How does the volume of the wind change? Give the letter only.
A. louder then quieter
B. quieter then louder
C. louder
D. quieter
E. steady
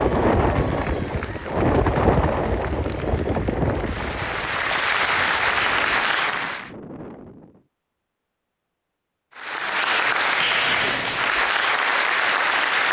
D.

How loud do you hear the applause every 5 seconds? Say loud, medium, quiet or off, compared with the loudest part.
medium, loud, loud.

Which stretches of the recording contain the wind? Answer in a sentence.
You can hear the wind from 0.0 to 7.7 s.